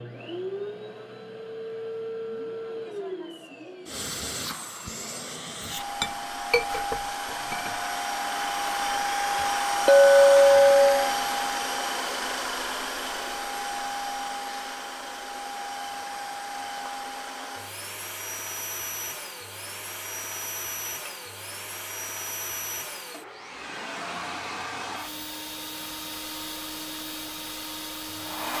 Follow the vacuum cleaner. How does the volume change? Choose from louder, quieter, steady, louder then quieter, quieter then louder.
louder then quieter.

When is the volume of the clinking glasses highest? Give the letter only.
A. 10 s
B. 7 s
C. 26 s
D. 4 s
A.